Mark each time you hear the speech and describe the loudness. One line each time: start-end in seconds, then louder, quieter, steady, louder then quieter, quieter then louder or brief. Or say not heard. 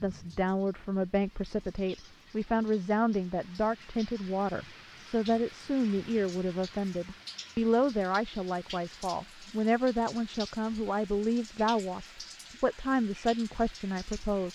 0.0-14.5 steady.